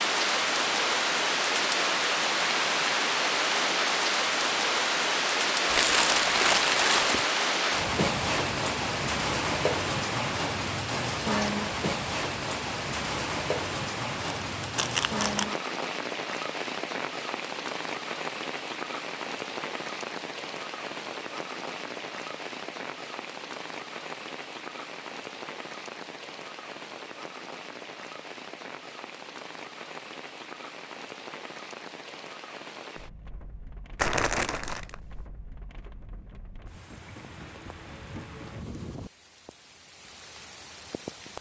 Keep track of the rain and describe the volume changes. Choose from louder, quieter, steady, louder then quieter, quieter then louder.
quieter.